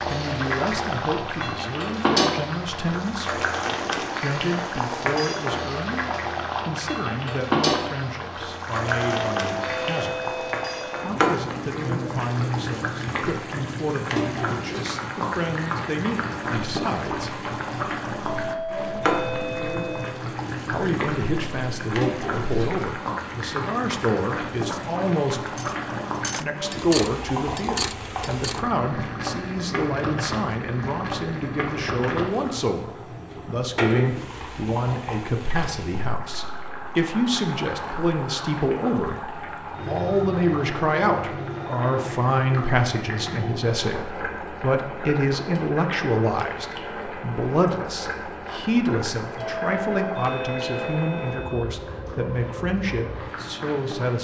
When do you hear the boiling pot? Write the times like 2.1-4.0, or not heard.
0.0-54.1.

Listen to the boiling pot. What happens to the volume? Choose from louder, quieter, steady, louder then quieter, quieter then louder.
quieter.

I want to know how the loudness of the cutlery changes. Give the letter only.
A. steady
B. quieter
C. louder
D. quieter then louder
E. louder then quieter
C.